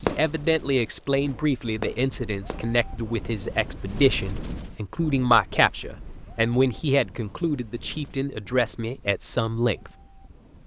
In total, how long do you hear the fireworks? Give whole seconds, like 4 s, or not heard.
3 s.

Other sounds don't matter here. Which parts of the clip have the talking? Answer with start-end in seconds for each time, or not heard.
0.0-9.9.